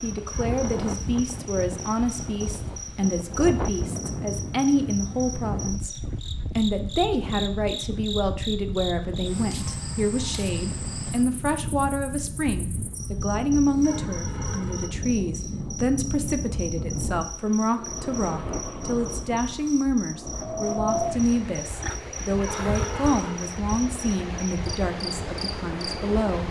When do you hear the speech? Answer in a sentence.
The speech can be heard from 0.0 to 6.0 s and from 6.5 to 26.4 s.